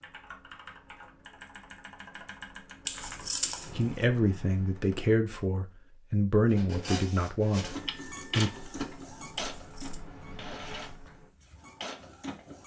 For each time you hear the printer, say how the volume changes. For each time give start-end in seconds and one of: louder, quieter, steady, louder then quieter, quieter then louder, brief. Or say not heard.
6.5-12.6 quieter.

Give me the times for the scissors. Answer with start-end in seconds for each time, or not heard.
2.9-4.0, 9.6-10.0.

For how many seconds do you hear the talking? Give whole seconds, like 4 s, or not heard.
5 s.